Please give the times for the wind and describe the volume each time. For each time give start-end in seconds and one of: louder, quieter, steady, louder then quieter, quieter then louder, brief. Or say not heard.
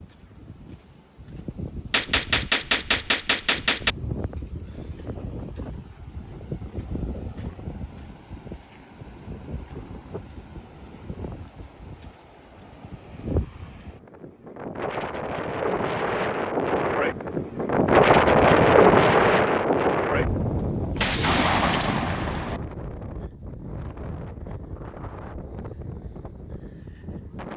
0.0-27.5 louder then quieter.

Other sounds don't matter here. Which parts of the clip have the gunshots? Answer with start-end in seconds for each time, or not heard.
1.9-4.0, 20.9-22.6.